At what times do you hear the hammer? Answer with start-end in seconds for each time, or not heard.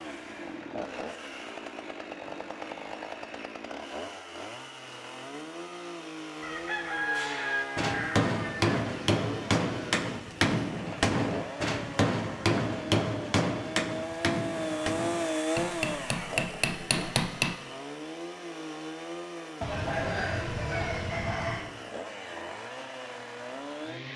7.2-17.6.